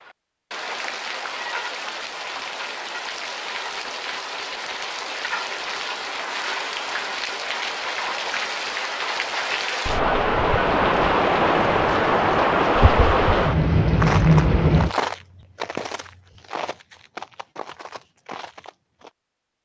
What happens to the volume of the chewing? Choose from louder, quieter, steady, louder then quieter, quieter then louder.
quieter.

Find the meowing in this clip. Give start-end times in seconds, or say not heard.
not heard.